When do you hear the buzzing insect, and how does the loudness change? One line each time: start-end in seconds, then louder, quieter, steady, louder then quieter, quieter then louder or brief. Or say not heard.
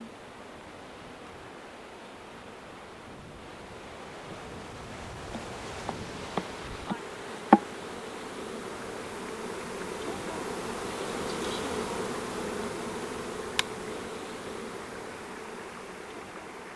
0.0-16.7 louder then quieter.